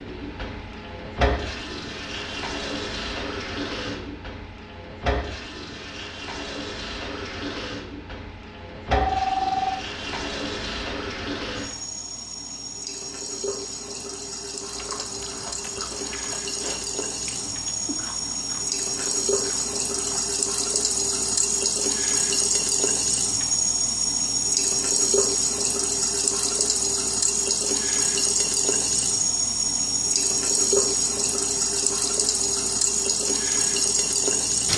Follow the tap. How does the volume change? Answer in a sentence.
The loudness of the tap goes up.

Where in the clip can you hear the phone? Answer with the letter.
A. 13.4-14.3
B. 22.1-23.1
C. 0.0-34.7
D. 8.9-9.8
D.